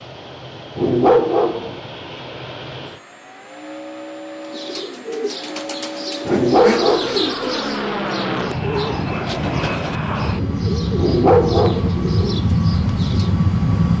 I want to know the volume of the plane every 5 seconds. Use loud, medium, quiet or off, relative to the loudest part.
quiet, medium, loud.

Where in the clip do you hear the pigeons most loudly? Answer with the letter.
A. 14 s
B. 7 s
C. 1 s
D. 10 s
B.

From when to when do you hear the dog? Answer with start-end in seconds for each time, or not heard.
0.8-1.8, 6.2-7.3, 10.9-12.0.